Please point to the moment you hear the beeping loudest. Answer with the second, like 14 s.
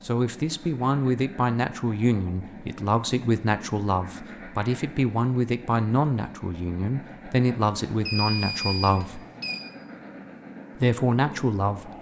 8 s.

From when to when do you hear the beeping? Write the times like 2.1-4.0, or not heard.
7.8-9.7.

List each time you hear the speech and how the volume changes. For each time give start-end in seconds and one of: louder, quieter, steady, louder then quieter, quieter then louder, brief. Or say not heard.
0.0-9.2 steady
10.8-11.9 brief.